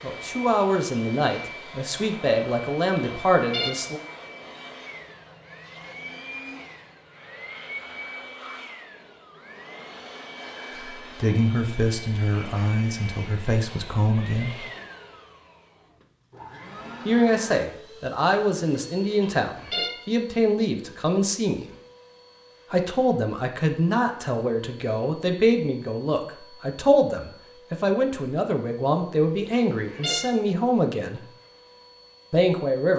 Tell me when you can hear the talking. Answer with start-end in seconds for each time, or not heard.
0.0-4.0, 11.0-14.6, 17.1-21.6, 22.7-31.2, 32.3-32.9.